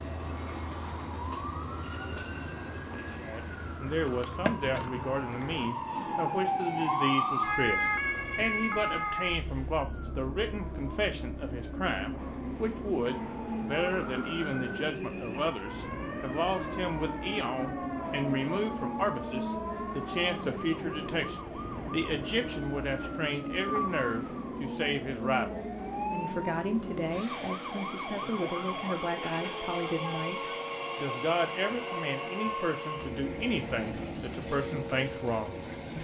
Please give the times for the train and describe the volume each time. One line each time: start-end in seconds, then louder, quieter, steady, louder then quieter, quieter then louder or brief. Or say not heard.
0.0-35.9 louder.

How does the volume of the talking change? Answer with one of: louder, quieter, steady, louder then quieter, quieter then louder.
steady.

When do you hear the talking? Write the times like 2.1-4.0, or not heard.
3.2-35.9.